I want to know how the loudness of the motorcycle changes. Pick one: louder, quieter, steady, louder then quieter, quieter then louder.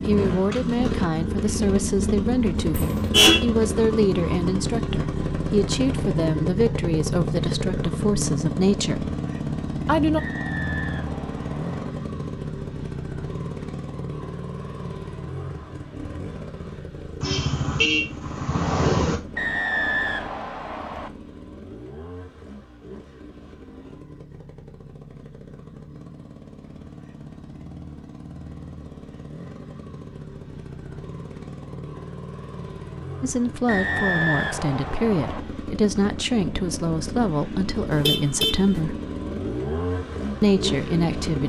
quieter then louder.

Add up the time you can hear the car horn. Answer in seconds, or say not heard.
3 s.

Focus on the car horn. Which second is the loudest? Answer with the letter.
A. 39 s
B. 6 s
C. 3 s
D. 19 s
C.